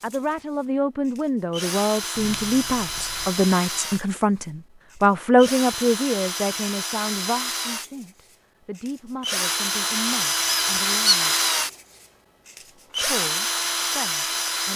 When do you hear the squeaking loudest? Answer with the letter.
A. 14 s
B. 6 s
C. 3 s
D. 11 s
D.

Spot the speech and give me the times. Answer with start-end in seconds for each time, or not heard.
0.0-11.3, 13.0-14.7.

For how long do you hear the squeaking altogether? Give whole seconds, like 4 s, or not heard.
2 s.